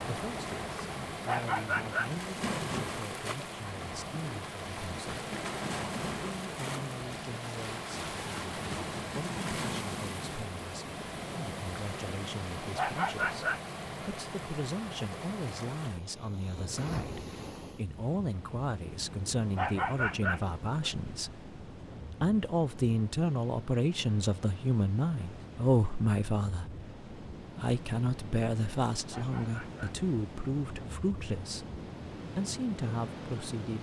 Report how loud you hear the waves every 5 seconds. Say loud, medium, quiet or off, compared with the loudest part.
loud, loud, loud, medium, medium, medium, medium.